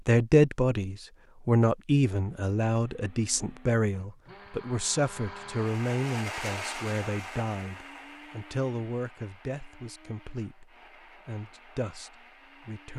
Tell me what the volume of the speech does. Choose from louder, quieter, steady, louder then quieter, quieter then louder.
quieter.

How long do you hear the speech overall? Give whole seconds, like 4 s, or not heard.
13 s.